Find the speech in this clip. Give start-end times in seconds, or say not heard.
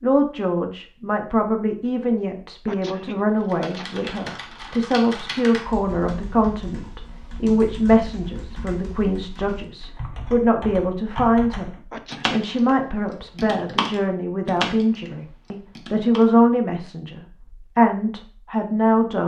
0.0-19.2.